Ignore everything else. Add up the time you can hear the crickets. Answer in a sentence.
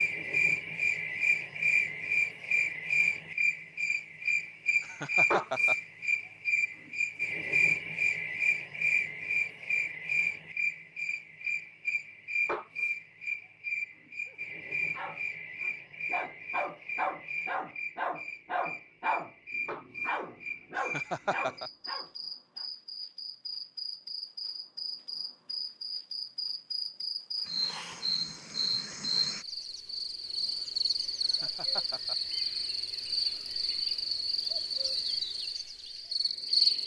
You can hear the crickets for 37 seconds altogether.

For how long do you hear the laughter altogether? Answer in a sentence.
You can hear the laughter for 3 seconds altogether.